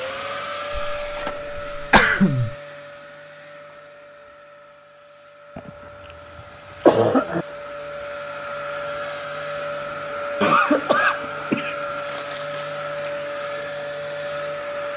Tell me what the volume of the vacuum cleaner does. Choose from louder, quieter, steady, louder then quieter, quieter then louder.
quieter then louder.